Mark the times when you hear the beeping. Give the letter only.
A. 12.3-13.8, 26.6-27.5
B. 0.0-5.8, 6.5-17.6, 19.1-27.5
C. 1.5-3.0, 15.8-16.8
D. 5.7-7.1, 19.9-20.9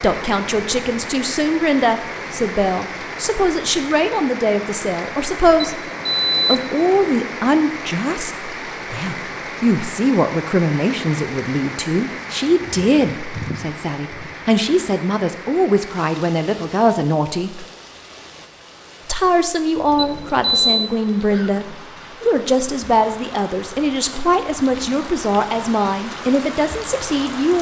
D.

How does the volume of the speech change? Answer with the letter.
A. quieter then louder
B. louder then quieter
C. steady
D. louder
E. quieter
C.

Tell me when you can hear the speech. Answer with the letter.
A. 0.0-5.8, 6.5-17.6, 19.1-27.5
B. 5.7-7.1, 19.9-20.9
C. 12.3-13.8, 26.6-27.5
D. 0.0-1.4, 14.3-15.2
A.